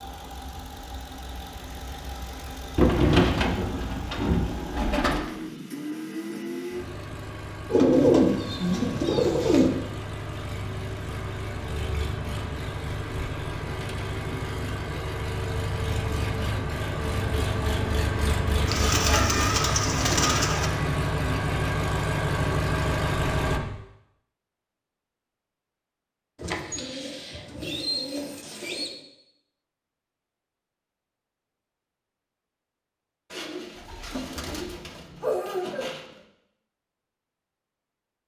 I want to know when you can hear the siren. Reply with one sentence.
The siren can't be heard in this clip.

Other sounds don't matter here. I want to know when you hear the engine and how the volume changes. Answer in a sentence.
The engine can be heard from 0.0 to 23.6 s, getting louder.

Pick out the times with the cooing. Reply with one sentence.
The cooing can be heard from 2.8 to 5.3 s, from 7.7 to 9.7 s, from 18.6 to 20.7 s, from 26.4 to 28.9 s and from 33.3 to 36.0 s.